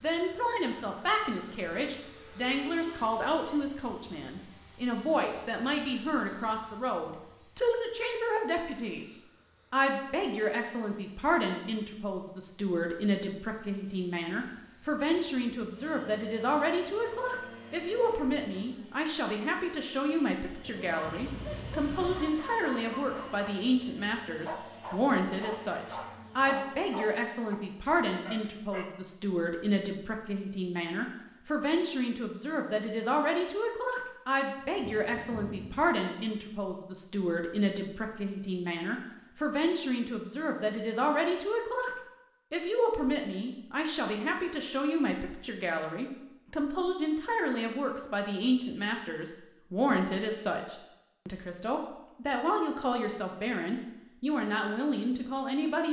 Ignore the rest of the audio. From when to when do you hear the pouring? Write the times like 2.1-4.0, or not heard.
21.1-22.1.